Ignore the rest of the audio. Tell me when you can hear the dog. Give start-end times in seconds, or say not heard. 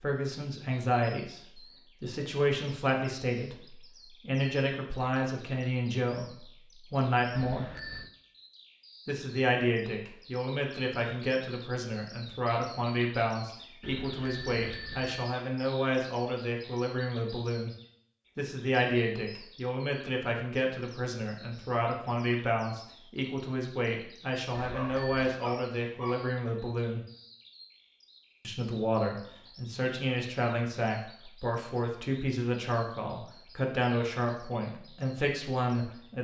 24.6-26.3.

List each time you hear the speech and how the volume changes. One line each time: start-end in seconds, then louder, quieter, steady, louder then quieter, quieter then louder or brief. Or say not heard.
0.0-7.7 steady
9.1-17.8 steady
18.4-27.1 steady
28.4-36.1 steady.